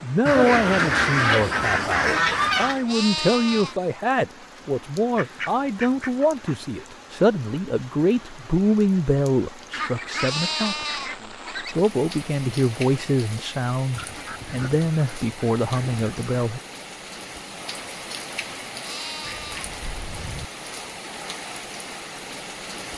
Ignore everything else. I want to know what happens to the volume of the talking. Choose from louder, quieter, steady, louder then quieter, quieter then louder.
steady.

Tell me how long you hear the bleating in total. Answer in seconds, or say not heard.
3 s.